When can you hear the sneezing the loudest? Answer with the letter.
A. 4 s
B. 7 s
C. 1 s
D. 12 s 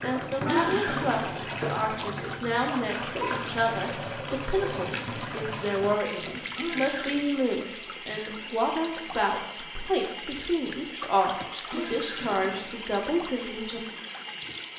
C.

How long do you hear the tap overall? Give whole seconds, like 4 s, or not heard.
15 s.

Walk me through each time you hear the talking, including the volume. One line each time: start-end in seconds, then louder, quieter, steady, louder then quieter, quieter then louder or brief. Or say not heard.
0.0-13.8 steady.